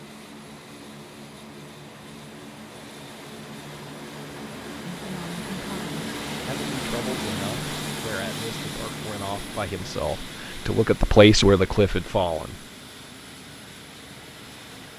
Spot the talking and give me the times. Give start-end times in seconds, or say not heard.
4.9-12.7.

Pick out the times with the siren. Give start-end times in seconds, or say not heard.
not heard.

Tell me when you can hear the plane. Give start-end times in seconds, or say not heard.
0.0-14.9.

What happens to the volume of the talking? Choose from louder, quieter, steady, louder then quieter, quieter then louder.
louder.